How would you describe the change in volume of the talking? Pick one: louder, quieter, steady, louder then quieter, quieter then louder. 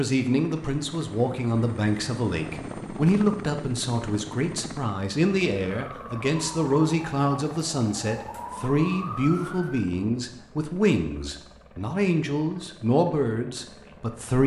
steady.